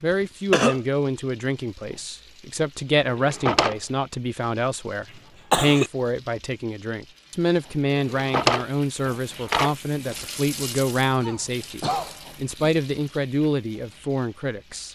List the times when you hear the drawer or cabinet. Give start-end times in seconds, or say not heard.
3.0-3.8, 8.0-9.7.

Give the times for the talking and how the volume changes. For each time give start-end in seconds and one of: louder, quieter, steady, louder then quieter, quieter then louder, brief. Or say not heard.
0.0-14.8 steady.